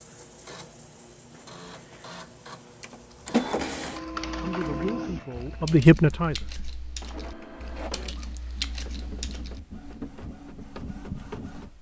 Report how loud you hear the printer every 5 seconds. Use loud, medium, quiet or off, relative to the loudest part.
loud, medium, medium.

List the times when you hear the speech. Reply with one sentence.
The speech can be heard from 4.4 to 6.5 s.